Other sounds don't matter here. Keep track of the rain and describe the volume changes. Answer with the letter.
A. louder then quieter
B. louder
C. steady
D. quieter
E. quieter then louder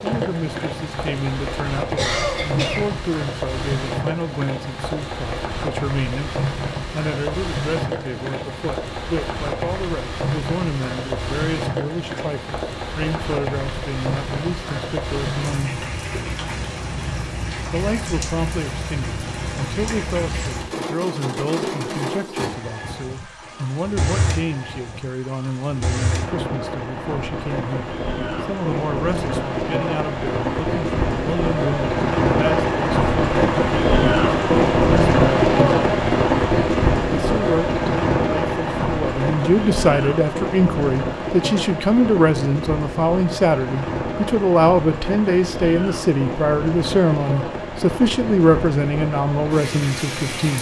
A.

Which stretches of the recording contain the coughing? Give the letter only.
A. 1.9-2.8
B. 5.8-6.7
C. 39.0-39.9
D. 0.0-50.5
A.